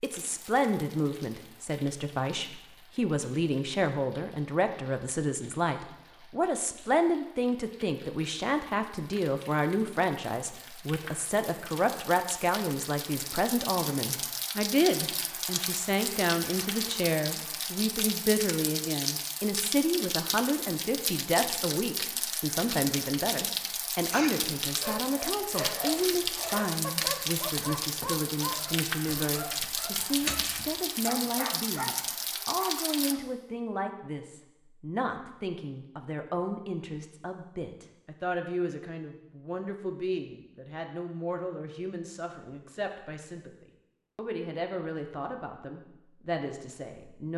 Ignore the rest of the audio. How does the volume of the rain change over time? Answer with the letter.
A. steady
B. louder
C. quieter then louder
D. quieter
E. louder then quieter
B.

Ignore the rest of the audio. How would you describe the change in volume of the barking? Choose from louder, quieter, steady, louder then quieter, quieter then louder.
steady.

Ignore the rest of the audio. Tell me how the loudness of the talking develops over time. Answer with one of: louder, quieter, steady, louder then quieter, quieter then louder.
quieter.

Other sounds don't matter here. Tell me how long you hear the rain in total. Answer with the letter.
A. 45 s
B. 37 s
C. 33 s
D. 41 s
C.